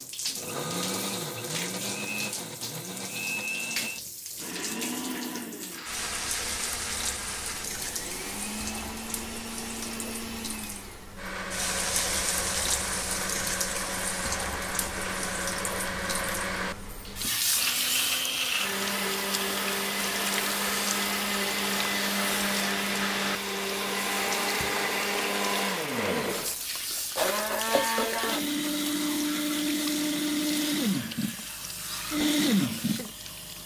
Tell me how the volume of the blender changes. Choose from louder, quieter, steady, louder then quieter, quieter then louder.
louder.